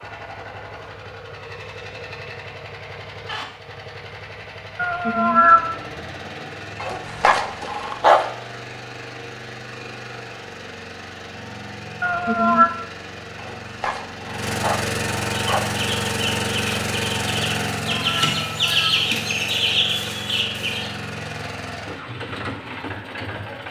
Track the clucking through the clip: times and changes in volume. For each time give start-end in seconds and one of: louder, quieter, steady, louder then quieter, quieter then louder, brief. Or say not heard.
15.3-20.9 louder.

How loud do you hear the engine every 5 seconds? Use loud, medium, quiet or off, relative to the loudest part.
medium, medium, medium, loud, medium.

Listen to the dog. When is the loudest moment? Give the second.
8 s.